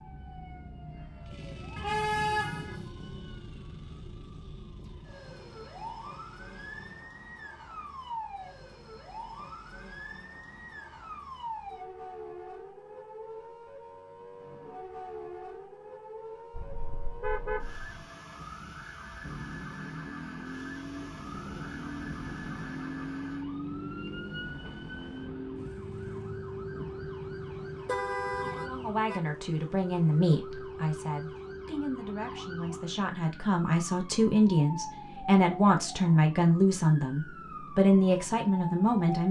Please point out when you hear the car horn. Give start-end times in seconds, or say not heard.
1.8-2.9, 16.5-18.1, 27.9-29.2.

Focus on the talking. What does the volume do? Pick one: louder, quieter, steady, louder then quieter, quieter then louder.
quieter then louder.